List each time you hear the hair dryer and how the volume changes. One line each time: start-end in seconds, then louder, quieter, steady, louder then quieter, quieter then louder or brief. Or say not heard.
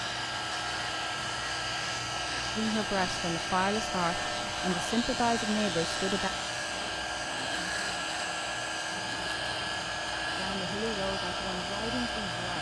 0.0-12.5 steady.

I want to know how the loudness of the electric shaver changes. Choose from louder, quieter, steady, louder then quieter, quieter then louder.
steady.